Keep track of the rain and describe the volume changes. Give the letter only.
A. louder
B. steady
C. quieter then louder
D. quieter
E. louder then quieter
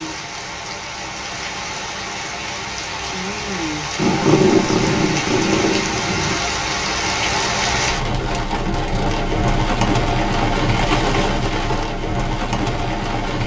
A.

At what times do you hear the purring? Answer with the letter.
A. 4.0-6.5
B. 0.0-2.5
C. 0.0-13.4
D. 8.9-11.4
A.